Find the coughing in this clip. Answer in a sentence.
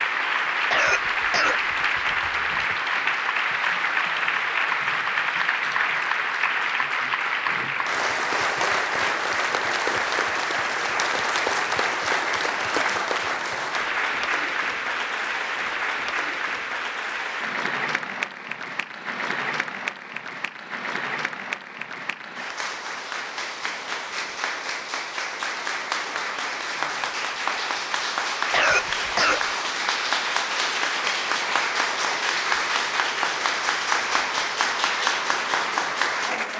The coughing can be heard from 0.7 to 2.5 s and from 28.5 to 29.5 s.